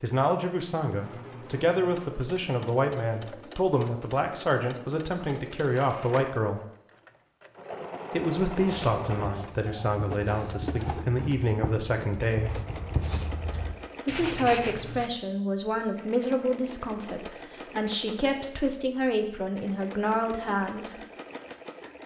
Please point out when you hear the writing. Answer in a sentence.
You can hear the writing from 8.6 to 15.1 s.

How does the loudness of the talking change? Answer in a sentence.
The loudness of the talking stays about the same.